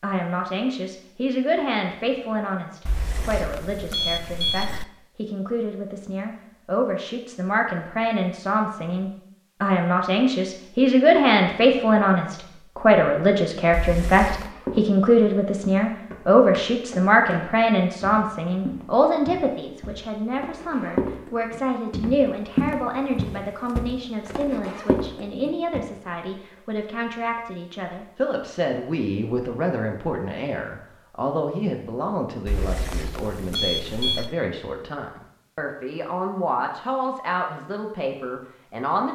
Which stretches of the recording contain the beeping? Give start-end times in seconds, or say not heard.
2.9-4.8, 13.7-14.5, 32.5-34.4.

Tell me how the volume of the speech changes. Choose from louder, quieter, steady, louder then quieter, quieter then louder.
louder then quieter.